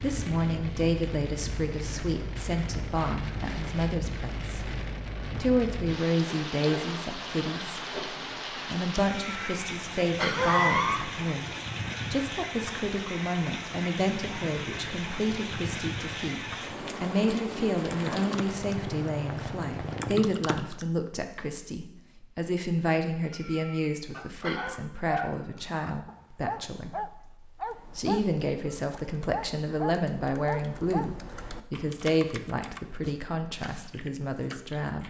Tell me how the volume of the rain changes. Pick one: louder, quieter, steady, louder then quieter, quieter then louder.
steady.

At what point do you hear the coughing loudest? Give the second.
11 s.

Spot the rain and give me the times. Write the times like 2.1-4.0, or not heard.
0.0-20.5.